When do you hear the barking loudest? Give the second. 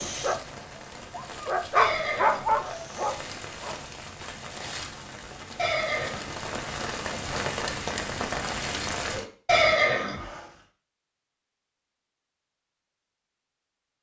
2 s.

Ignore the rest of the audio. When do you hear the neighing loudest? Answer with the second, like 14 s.
10 s.